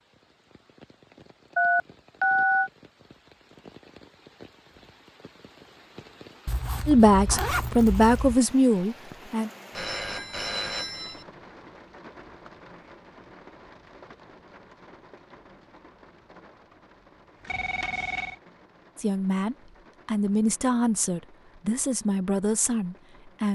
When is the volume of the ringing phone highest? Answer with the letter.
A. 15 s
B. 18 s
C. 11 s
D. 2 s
D.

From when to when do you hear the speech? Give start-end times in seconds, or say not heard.
6.8-9.5, 18.9-23.5.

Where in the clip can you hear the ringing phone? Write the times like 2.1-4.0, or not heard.
1.6-2.7, 9.8-11.2, 17.4-18.4.